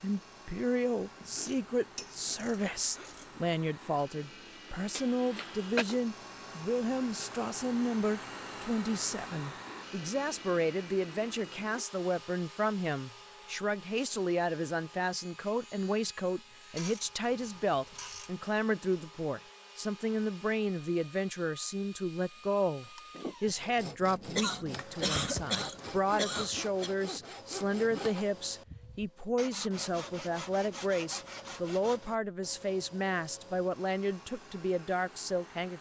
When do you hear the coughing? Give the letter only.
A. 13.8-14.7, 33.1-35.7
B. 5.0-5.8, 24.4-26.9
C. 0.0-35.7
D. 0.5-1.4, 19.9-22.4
B.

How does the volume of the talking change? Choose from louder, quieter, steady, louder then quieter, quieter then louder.
steady.